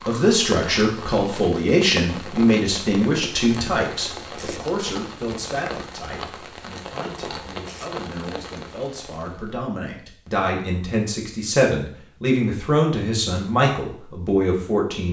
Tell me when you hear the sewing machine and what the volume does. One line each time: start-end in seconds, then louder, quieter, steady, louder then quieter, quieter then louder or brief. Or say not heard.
not heard.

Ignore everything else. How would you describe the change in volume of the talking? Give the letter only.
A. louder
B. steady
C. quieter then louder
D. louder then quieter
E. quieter
C.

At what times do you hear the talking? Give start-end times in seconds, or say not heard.
0.0-15.0.